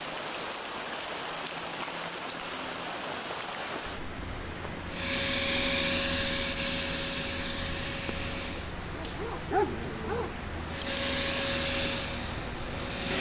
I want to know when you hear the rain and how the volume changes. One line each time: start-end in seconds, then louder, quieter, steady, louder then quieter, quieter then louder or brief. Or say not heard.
0.0-13.1 steady.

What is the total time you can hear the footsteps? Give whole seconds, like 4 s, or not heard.
not heard.